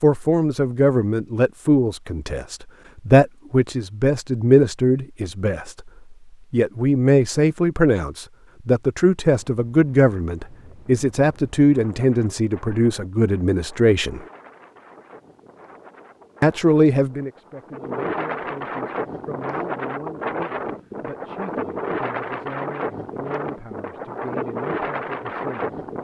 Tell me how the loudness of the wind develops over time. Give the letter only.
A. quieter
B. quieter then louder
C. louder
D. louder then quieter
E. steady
C.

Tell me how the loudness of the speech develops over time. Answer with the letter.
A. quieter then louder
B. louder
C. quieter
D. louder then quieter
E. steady
C.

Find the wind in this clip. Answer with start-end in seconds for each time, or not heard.
9.3-25.9.